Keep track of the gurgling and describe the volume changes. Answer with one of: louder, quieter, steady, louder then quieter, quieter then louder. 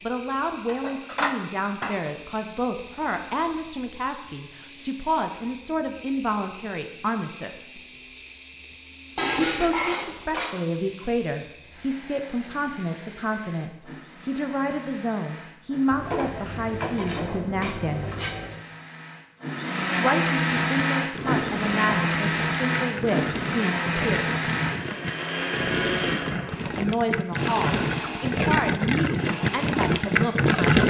louder.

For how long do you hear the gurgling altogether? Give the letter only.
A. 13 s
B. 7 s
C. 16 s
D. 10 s
D.